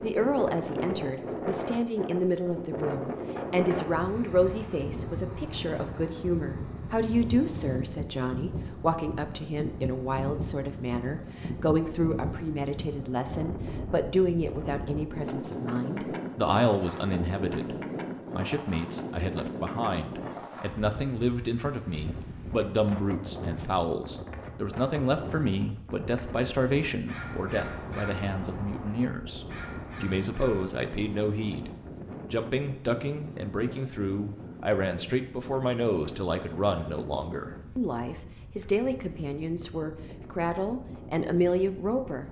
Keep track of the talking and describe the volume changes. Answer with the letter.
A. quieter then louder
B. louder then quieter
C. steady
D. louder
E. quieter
C.